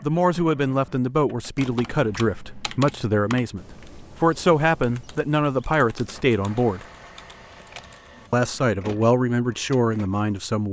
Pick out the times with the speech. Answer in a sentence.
The speech can be heard from 0.0 to 6.8 s and from 8.3 to 10.6 s.